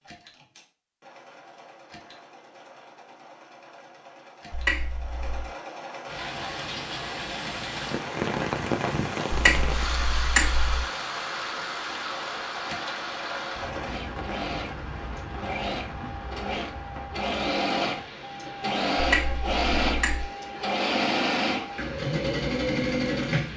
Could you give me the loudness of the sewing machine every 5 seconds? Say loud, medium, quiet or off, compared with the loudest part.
quiet, quiet, medium, loud, loud.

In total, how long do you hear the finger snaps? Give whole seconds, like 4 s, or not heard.
4 s.